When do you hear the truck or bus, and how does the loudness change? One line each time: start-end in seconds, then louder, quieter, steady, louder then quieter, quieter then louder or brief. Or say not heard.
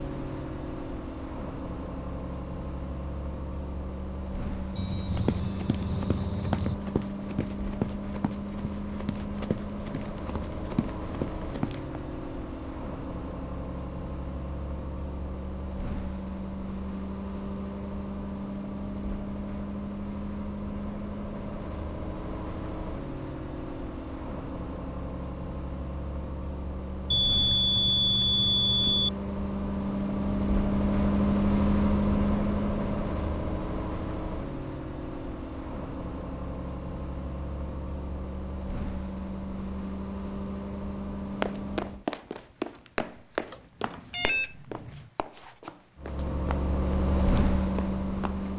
0.0-42.0 louder then quieter
46.0-48.5 brief.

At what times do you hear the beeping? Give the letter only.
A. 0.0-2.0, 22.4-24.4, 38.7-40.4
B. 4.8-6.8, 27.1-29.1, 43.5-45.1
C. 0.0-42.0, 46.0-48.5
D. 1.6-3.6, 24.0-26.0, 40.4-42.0
B.